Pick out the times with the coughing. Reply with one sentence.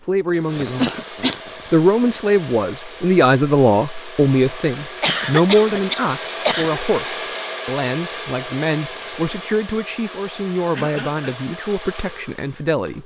You can hear the coughing from 0.6 to 1.5 s, from 5.0 to 6.8 s and from 10.7 to 11.3 s.